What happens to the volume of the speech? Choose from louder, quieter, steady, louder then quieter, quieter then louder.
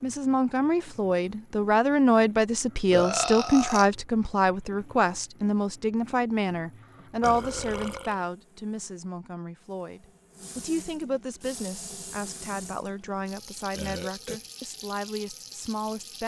quieter.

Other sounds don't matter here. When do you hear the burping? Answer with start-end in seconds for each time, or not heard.
2.9-3.9, 7.2-8.2, 13.7-14.4.